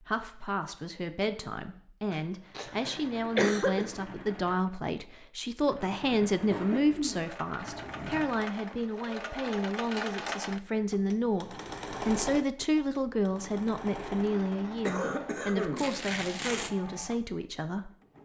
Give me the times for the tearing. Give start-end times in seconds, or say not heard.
15.8-16.7.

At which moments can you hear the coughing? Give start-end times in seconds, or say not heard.
2.1-3.9, 6.5-8.3, 14.2-15.9.